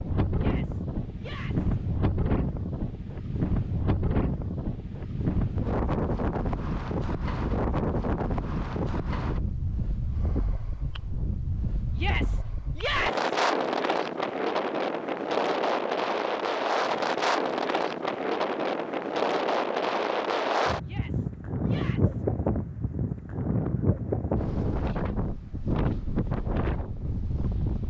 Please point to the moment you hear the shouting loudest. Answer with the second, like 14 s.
13 s.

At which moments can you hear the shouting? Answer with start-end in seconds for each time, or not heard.
0.3-1.8, 11.9-13.2, 20.8-22.2.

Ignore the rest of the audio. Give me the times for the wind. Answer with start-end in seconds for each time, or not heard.
0.0-27.8.